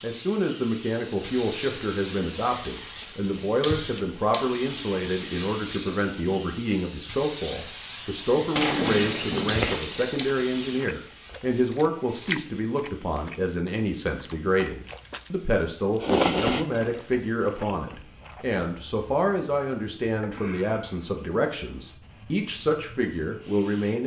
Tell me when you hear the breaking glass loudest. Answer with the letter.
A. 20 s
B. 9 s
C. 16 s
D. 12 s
B.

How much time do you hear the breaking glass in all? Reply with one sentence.
The breaking glass can be heard for 2 seconds in total.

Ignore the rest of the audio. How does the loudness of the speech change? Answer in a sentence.
The volume of the speech stays about the same.